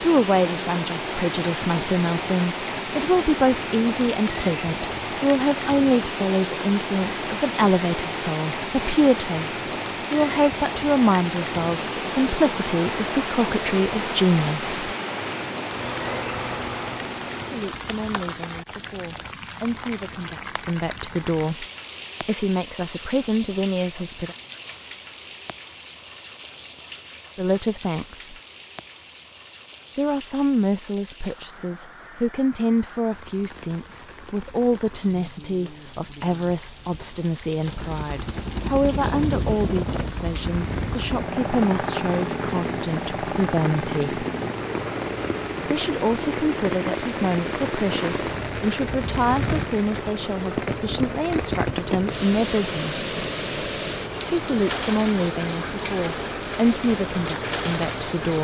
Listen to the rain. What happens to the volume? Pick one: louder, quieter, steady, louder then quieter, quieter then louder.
quieter then louder.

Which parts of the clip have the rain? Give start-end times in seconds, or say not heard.
0.0-58.4.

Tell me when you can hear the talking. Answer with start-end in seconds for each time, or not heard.
0.0-14.9, 17.4-24.4, 27.4-28.4, 29.9-44.2, 45.6-53.1, 54.3-58.4.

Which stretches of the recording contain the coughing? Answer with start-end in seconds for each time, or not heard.
not heard.